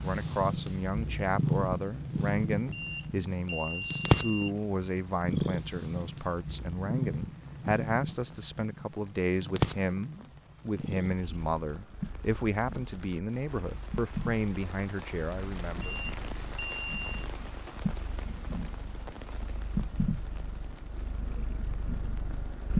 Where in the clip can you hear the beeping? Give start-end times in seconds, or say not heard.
2.5-4.5, 15.6-17.3.